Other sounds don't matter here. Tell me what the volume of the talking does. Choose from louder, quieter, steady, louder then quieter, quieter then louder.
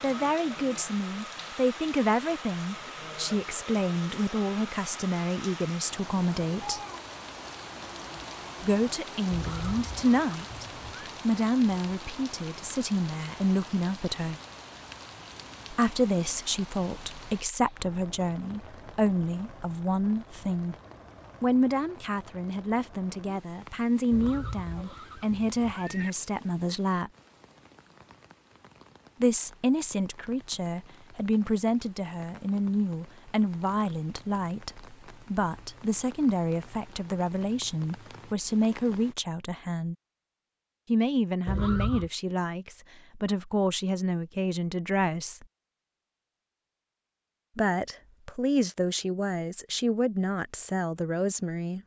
steady.